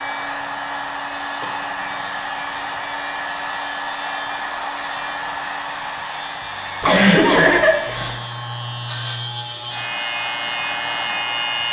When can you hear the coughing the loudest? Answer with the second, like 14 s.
7 s.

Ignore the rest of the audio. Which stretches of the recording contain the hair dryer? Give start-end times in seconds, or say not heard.
0.0-11.6.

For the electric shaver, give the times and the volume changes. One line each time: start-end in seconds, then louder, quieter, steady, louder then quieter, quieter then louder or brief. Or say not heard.
0.0-11.6 louder.